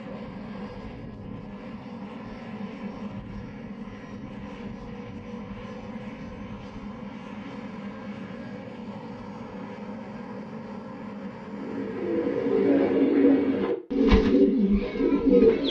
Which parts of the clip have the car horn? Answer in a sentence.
The car horn can't be heard in this clip.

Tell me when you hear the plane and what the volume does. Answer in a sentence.
The plane can be heard from 0.0 to 13.0 s, at a steady volume.